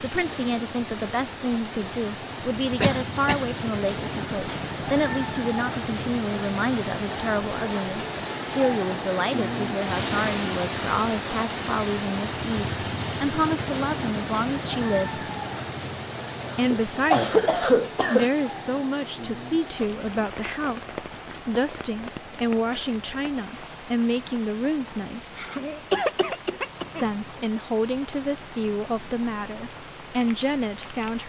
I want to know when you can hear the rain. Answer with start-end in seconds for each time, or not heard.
0.0-31.2.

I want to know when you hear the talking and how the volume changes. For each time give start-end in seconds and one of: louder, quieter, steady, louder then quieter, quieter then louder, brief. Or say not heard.
0.0-15.2 steady
16.6-25.4 steady
26.9-31.2 quieter then louder.